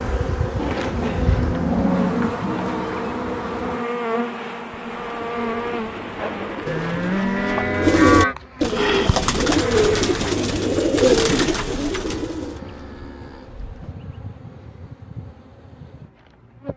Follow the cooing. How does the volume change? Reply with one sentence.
The volume of the cooing goes up.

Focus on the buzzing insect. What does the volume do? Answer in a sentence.
The loudness of the buzzing insect goes down.